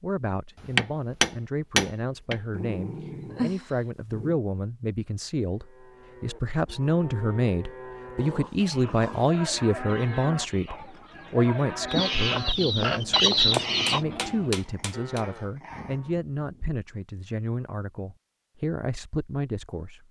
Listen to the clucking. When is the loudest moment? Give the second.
13 s.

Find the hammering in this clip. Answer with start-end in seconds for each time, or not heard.
0.7-2.4, 13.5-15.2.